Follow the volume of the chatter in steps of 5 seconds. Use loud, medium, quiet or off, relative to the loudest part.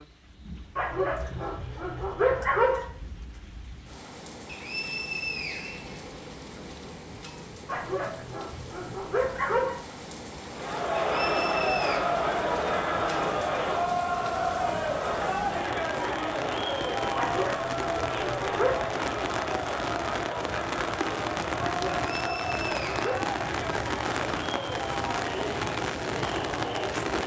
off, off, loud, loud, medium, medium.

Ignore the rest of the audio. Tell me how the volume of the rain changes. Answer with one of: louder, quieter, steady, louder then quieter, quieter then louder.
louder.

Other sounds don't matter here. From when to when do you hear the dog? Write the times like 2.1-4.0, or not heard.
0.8-2.9, 7.7-9.8, 17.1-18.9, 21.6-23.3.